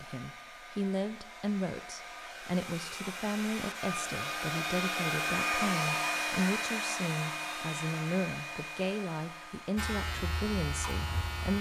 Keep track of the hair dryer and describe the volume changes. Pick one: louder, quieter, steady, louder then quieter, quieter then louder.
louder then quieter.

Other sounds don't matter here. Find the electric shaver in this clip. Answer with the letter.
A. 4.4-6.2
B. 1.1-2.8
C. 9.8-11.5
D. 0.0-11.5
C.